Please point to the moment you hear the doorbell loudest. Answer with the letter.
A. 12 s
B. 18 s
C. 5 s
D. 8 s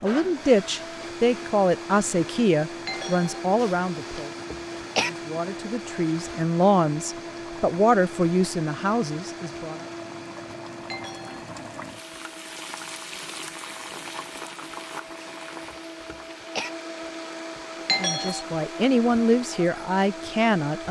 B.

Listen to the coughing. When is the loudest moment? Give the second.
5 s.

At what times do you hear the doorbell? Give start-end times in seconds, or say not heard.
2.9-3.4, 10.9-11.4, 17.9-18.4.